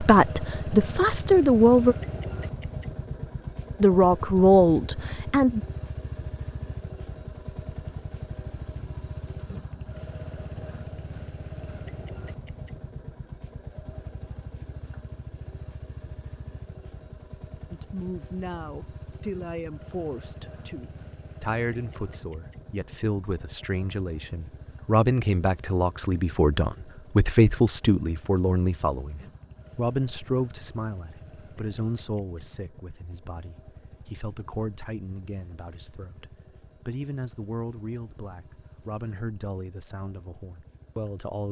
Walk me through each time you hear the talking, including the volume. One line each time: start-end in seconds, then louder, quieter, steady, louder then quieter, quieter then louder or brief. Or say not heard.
0.0-1.9 brief
3.8-5.6 brief
17.7-41.4 louder then quieter.